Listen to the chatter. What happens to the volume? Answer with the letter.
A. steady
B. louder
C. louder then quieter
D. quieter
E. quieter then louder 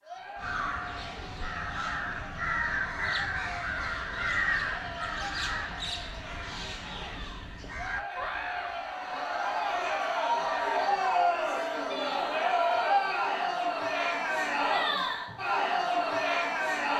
B.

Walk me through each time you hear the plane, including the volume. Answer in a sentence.
The plane can't be heard in this clip.